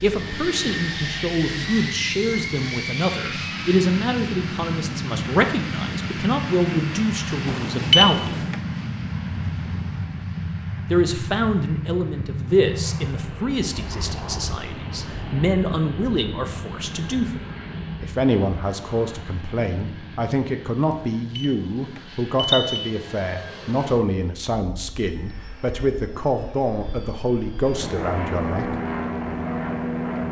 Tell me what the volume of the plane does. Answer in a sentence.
The volume of the plane goes down, then up.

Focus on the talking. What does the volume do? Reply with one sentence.
The volume of the talking stays about the same.